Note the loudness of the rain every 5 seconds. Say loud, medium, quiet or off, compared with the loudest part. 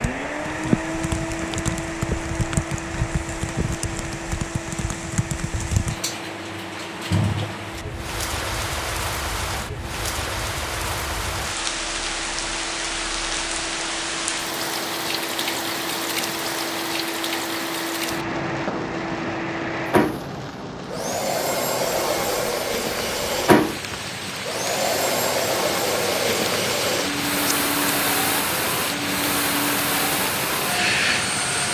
loud, loud, loud, loud, medium, loud, loud.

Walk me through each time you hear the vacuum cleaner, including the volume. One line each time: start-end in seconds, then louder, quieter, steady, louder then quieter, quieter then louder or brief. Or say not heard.
0.0-31.6 quieter then louder.